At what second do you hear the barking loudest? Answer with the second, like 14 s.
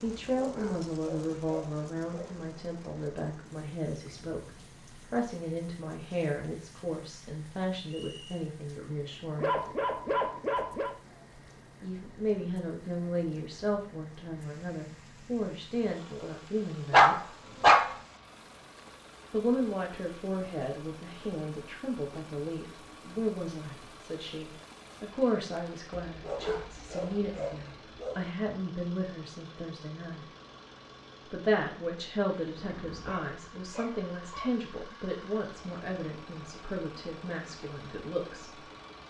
17 s.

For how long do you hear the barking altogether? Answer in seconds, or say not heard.
9 s.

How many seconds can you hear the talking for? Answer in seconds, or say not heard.
33 s.